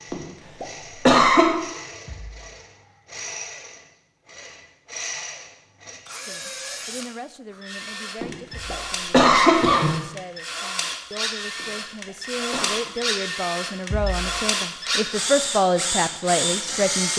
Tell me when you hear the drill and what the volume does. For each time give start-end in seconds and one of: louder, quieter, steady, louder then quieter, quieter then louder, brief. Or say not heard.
0.0-17.1 louder.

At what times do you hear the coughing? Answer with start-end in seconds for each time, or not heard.
0.1-1.5, 8.2-9.9, 11.6-12.9.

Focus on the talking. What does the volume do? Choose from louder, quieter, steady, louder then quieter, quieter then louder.
louder.